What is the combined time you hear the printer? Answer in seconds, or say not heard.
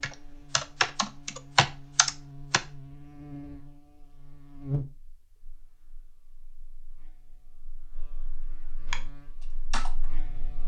not heard.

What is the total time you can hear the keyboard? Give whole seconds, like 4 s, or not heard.
4 s.